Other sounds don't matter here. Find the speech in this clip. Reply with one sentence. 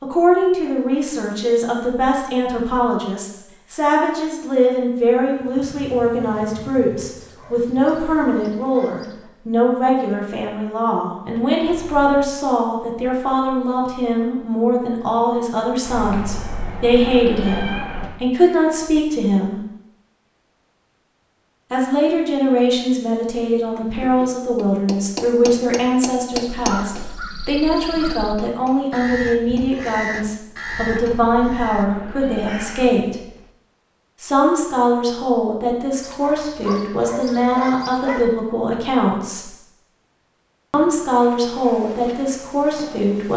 The speech can be heard from 0.0 to 19.6 s, from 21.7 to 33.2 s, from 34.2 to 39.5 s and from 40.7 to 43.3 s.